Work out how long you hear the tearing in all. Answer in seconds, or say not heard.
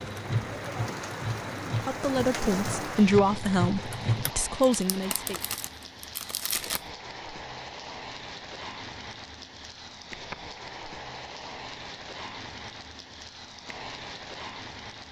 2 s.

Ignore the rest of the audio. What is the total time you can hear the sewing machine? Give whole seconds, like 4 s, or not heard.
4 s.